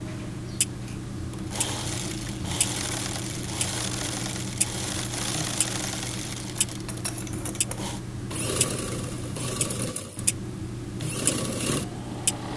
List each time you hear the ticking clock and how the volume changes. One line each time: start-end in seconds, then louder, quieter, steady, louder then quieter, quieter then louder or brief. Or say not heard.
0.0-12.5 steady.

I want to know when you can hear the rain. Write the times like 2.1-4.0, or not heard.
not heard.